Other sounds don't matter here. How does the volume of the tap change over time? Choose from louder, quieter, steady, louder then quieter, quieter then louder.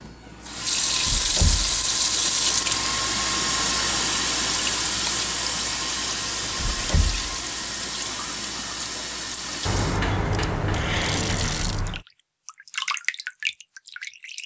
quieter.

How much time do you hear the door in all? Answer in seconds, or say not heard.
4 s.